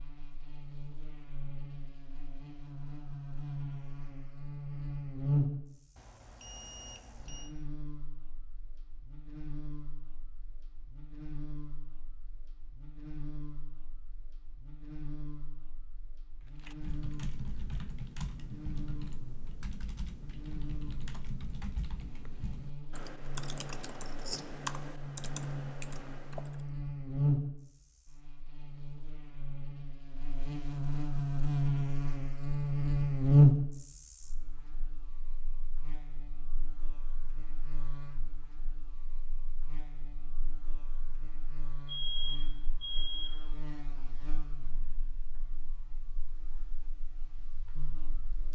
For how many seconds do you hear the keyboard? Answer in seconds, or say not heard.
10 s.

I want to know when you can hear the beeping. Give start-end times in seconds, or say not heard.
6.0-7.5, 41.9-43.4.